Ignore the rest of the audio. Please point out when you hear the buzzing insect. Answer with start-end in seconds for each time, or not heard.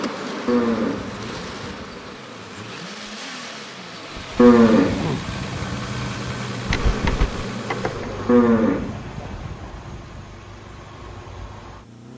0.0-8.5.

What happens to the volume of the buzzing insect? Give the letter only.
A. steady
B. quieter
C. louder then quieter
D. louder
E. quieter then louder
E.